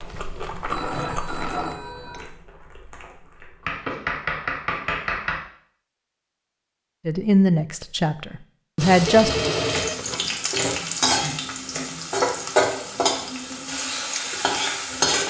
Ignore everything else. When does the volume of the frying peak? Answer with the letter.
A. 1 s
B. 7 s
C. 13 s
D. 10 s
C.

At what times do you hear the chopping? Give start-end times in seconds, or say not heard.
3.6-5.4, 9.7-12.4.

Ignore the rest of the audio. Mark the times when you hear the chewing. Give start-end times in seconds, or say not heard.
0.0-3.9.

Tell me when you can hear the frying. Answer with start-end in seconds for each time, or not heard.
8.8-15.2.